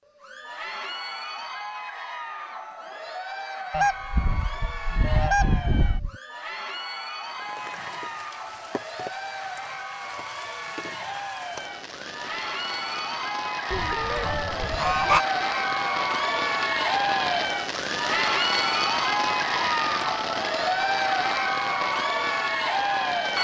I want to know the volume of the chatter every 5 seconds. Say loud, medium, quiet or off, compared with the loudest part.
medium, medium, medium, loud, loud.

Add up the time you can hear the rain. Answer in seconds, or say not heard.
16 s.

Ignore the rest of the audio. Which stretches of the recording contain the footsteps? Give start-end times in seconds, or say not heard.
not heard.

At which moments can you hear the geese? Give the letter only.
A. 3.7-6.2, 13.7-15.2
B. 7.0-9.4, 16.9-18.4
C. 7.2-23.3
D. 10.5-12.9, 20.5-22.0
A.